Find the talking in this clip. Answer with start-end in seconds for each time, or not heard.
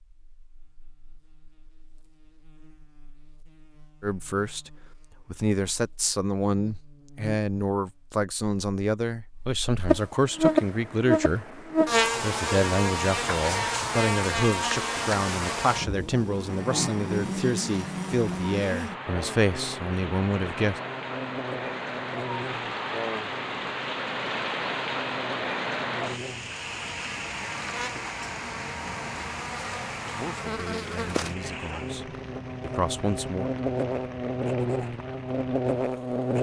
4.0-20.8, 30.0-33.5.